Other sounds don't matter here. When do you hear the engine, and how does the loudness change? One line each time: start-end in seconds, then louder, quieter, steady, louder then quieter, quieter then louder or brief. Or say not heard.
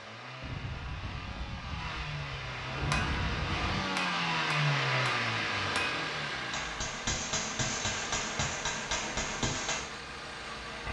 0.0-10.8 louder then quieter.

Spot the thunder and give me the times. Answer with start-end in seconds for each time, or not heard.
0.4-3.9.